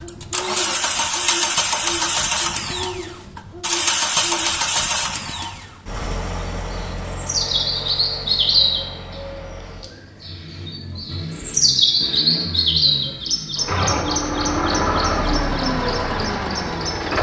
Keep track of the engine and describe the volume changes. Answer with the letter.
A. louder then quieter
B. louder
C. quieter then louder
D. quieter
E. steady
C.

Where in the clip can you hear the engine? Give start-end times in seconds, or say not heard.
0.0-17.1.